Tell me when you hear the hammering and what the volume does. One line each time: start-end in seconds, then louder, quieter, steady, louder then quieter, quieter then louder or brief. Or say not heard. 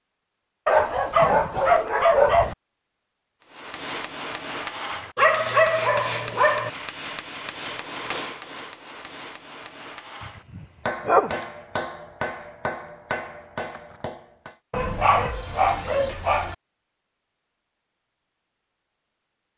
3.4-14.6 quieter.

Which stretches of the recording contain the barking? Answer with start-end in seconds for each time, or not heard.
0.7-2.5, 5.2-6.7, 10.2-11.3, 14.7-16.6.